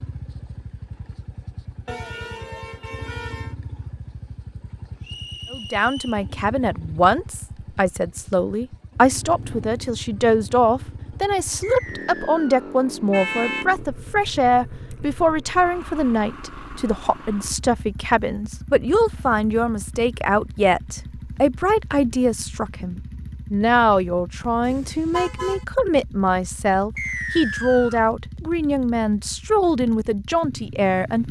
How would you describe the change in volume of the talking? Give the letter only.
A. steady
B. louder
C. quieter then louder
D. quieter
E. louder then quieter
A.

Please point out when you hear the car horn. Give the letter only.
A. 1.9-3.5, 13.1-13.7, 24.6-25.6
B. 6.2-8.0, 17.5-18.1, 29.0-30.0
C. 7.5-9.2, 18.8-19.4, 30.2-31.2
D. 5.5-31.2
A.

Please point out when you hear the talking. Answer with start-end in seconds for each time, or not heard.
5.5-31.2.